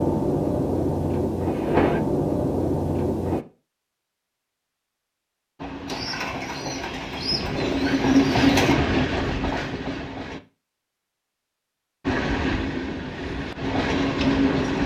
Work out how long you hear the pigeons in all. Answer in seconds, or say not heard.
3 s.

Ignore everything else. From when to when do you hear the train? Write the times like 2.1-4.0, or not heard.
0.0-3.5, 5.5-10.4, 12.1-14.8.